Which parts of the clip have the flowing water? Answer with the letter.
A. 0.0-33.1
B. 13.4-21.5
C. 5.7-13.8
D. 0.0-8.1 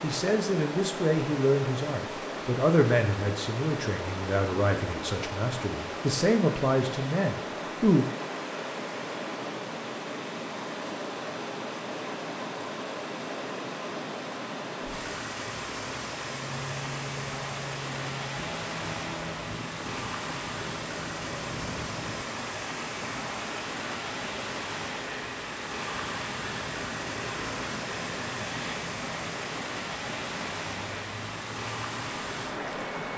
A.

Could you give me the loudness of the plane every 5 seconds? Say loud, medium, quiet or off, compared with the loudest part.
off, off, off, loud, loud, loud, loud.